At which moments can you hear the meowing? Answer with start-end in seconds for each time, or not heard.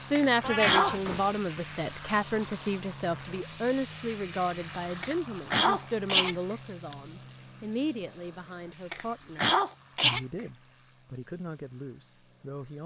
0.4-1.4.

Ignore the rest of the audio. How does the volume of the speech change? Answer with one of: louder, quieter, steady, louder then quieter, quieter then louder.
quieter.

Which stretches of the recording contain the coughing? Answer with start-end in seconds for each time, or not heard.
0.1-0.9, 5.0-7.0, 8.9-10.2.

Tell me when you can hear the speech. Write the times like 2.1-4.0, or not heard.
0.1-12.8.